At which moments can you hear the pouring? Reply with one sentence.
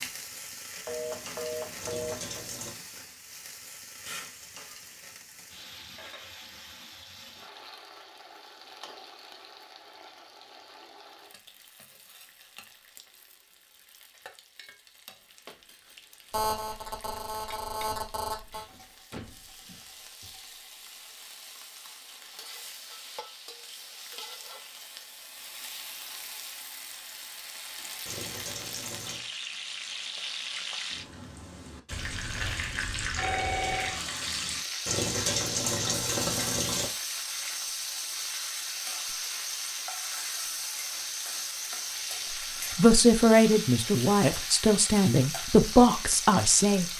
The pouring can be heard from 1.8 to 2.8 s, from 28.1 to 29.2 s and from 34.9 to 36.9 s.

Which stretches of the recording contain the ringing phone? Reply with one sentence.
You can hear the ringing phone from 0.8 to 2.5 s, from 16.3 to 18.6 s and from 31.9 to 34.0 s.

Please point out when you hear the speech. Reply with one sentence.
You can hear the speech from 42.3 to 46.9 s.